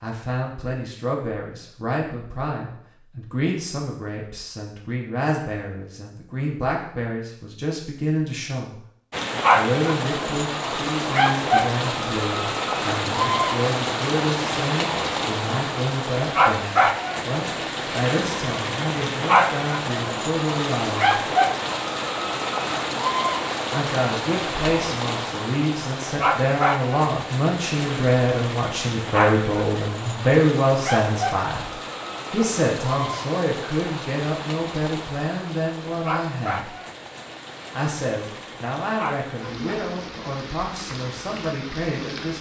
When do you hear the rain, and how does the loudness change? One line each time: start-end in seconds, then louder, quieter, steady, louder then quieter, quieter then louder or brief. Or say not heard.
9.1-42.3 quieter.